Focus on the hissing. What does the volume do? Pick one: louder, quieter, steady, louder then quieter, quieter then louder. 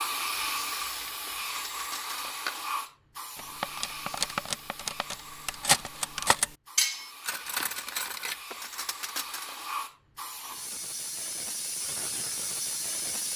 quieter then louder.